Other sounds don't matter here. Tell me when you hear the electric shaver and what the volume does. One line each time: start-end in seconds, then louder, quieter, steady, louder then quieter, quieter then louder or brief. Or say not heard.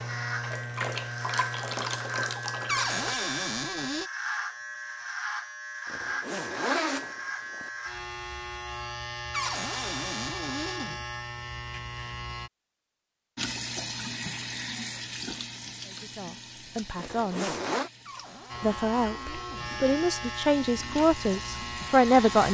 0.0-12.5 steady
18.5-22.5 steady.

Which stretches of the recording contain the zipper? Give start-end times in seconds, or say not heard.
5.8-7.7, 16.9-17.9.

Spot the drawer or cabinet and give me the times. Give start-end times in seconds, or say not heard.
2.6-4.1, 9.3-11.0, 18.1-19.8.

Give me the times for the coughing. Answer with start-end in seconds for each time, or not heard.
not heard.